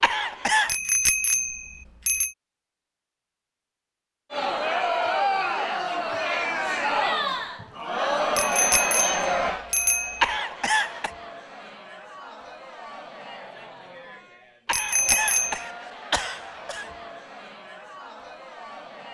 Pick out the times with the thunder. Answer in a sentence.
You can't hear the thunder here.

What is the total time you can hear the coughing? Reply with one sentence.
The coughing can be heard for 4 seconds in total.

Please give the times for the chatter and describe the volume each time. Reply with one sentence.
The chatter can be heard from 4.3 to 19.0 s, getting quieter.